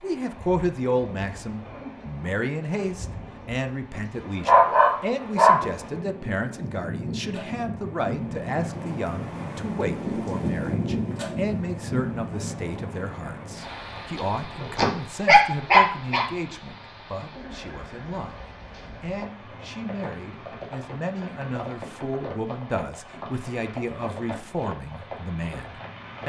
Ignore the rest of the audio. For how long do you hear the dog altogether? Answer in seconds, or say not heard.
3 s.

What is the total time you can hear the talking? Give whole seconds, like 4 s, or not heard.
26 s.